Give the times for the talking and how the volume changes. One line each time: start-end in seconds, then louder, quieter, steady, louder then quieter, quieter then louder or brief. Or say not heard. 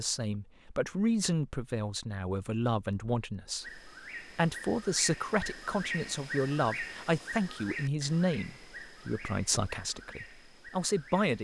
0.0-11.4 steady.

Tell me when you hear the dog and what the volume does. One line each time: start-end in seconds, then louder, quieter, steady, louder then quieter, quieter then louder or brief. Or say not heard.
not heard.